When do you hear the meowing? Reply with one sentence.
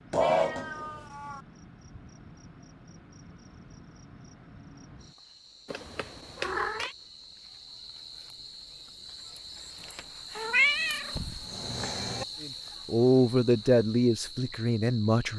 You can hear the meowing from 0.1 to 1.4 s, from 5.7 to 7.0 s and from 10.3 to 12.2 s.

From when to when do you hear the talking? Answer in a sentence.
You can hear the talking from 12.4 to 15.3 s.